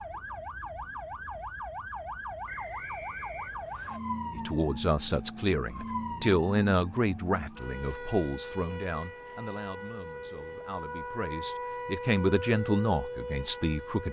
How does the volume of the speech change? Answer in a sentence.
The loudness of the speech goes down, then up.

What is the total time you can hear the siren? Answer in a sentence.
You can hear the siren for 14 seconds altogether.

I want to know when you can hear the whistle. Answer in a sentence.
The whistle can be heard from 2.5 to 4.0 s.